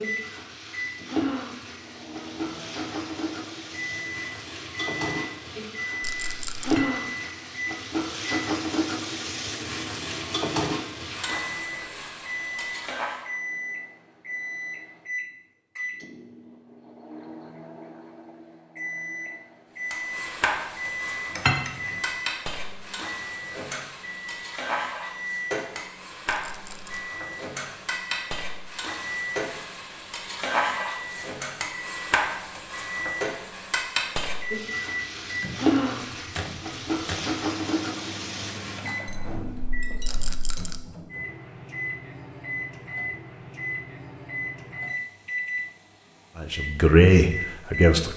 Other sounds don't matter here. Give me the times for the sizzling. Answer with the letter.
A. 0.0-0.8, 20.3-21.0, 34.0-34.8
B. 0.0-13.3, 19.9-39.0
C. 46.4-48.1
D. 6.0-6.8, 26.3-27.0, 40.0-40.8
B.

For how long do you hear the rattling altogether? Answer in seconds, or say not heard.
2 s.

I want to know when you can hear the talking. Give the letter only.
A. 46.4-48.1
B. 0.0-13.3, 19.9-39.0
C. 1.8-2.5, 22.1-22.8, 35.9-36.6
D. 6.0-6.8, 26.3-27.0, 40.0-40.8
A.